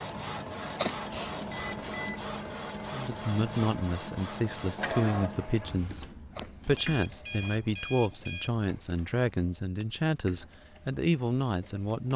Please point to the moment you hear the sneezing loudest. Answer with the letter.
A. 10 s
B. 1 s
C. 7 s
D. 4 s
B.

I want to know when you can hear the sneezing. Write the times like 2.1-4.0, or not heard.
0.8-1.9, 6.3-7.6.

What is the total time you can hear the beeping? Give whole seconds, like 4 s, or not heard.
3 s.